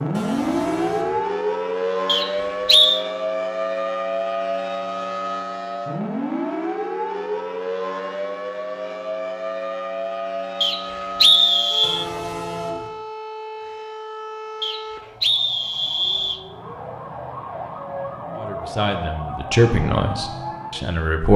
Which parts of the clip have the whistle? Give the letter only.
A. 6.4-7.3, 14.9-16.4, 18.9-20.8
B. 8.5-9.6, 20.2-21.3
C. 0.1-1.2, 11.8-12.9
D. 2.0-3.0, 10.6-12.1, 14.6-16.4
D.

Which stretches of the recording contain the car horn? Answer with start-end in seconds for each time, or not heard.
0.1-1.2, 11.8-12.9.